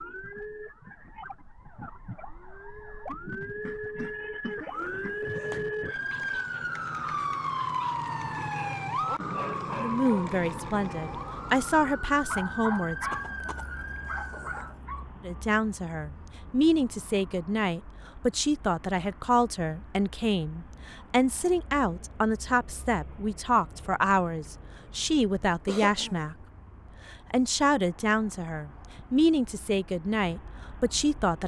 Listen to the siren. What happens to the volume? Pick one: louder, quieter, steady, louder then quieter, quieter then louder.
louder then quieter.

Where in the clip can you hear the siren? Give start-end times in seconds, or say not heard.
0.0-14.8.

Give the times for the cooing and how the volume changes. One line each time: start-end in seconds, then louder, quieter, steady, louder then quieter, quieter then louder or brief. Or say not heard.
not heard.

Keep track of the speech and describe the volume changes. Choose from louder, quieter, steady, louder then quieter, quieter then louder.
steady.